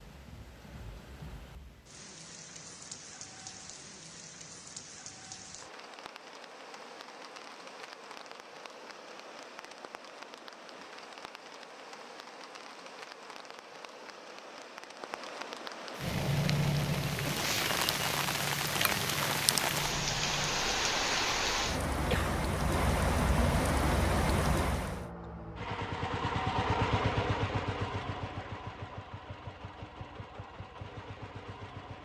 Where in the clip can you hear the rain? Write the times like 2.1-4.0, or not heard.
0.0-25.1.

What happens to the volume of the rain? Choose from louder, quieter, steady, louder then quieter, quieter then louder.
louder.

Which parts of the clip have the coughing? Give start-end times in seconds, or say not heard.
21.9-22.4.